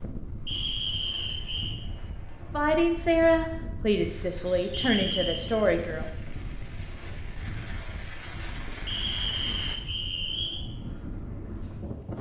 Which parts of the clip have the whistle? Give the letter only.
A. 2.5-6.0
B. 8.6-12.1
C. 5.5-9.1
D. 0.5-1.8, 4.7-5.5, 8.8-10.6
D.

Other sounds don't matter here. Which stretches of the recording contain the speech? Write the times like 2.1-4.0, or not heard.
2.5-6.0.